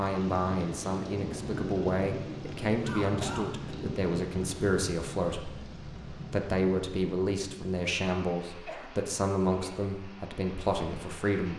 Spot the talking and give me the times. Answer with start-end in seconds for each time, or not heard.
0.0-11.5.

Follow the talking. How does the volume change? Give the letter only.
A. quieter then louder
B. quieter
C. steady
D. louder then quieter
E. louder
C.